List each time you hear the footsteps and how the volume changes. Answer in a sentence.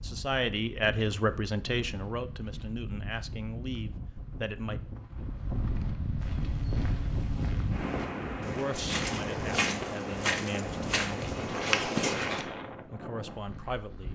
The footsteps can be heard from 6.2 to 12.4 s, getting louder.